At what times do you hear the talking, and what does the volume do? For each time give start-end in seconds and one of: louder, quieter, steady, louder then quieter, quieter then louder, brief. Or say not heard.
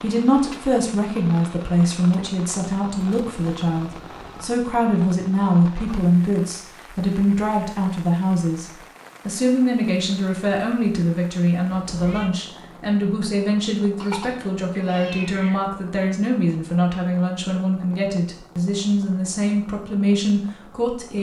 0.0-21.1 steady.